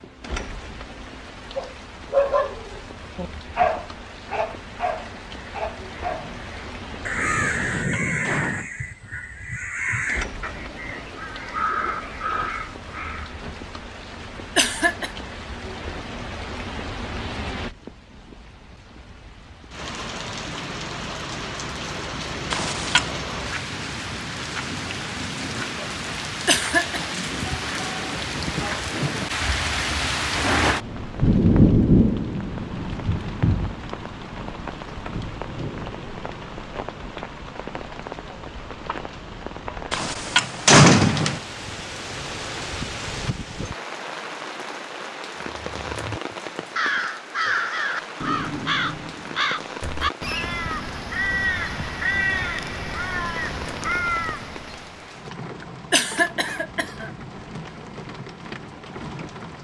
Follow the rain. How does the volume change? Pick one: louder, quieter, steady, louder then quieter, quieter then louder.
louder then quieter.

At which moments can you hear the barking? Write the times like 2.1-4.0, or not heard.
1.6-6.3.